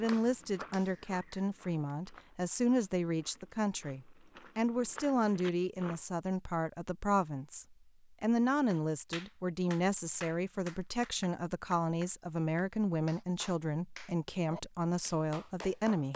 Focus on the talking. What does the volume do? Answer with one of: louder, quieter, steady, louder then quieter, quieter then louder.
steady.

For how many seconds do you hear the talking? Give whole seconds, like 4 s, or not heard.
16 s.